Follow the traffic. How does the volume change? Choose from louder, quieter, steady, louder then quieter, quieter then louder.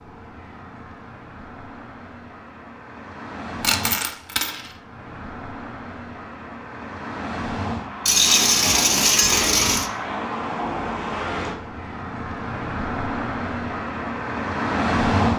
louder.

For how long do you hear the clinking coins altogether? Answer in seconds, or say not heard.
3 s.